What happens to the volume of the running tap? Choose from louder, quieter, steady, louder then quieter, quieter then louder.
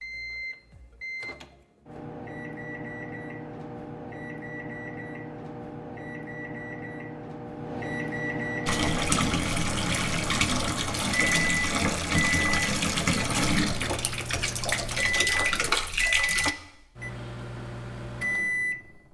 steady.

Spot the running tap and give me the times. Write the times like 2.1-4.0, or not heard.
8.7-16.6.